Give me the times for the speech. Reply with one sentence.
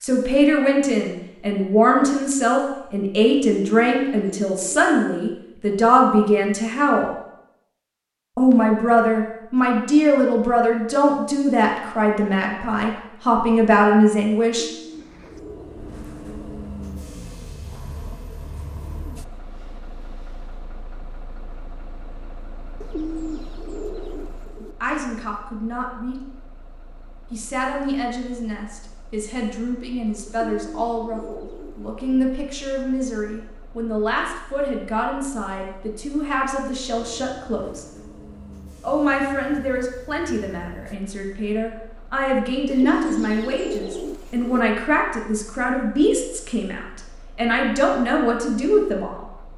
The speech can be heard from 0.0 to 7.1 s, from 8.3 to 14.7 s, from 24.6 to 26.2 s, from 27.3 to 37.9 s and from 38.8 to 49.2 s.